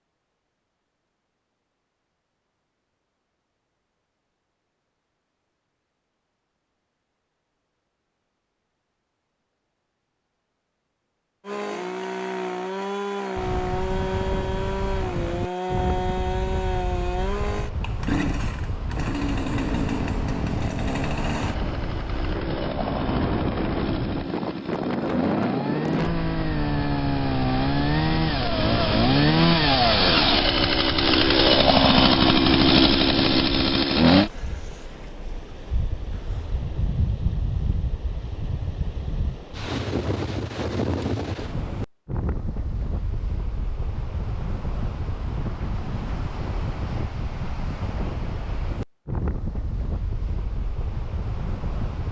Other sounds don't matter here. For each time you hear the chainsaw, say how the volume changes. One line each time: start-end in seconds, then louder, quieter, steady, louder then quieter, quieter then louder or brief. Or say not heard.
11.4-34.3 louder.